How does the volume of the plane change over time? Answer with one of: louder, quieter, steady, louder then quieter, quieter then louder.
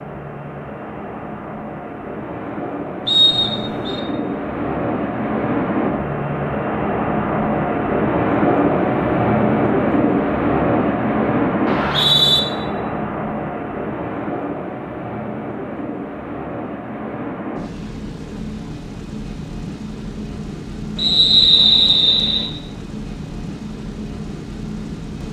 louder then quieter.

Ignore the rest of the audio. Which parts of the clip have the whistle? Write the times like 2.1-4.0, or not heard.
3.0-4.0, 11.7-12.4, 20.9-22.4.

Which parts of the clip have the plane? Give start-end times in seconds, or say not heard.
0.0-25.2.